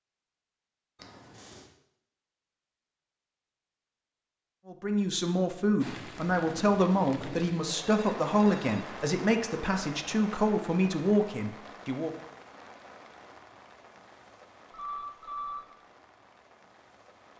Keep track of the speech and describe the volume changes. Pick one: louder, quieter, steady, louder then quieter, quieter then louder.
steady.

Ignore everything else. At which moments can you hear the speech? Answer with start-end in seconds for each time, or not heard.
4.7-12.1.